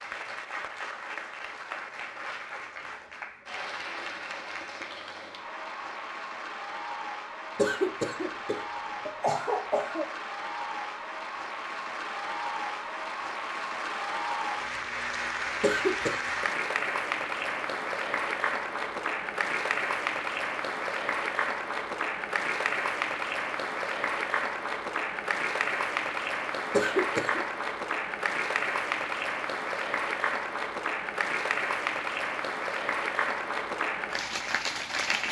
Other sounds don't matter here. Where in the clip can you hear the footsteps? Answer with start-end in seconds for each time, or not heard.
not heard.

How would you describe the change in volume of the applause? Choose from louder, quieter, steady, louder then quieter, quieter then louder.
louder.